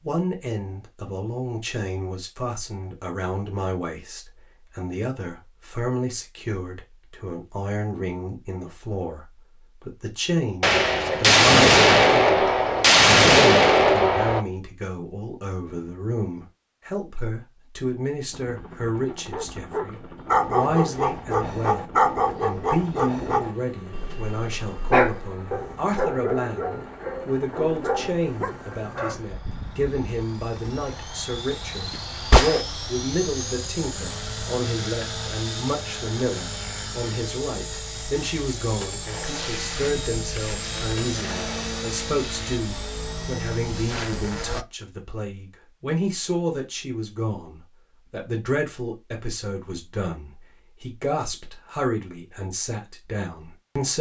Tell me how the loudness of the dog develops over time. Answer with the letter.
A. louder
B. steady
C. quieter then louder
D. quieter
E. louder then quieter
D.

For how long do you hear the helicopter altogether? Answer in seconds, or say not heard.
26 s.